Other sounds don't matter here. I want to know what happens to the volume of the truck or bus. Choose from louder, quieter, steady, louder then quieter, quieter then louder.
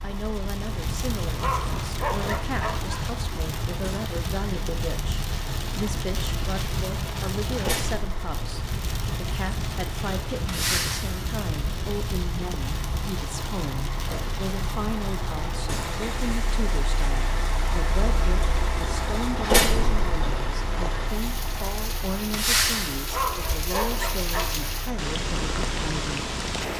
louder.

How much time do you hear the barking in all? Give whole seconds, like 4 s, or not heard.
3 s.